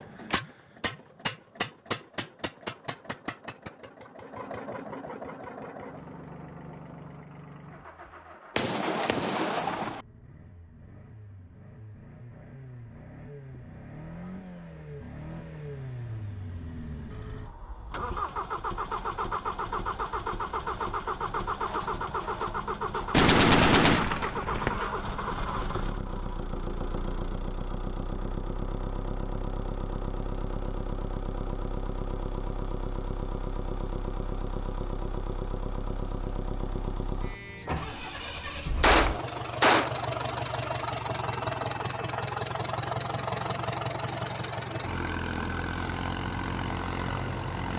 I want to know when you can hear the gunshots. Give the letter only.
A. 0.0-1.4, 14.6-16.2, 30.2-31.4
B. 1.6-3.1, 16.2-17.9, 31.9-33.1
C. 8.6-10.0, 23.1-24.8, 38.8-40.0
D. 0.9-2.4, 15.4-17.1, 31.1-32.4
C.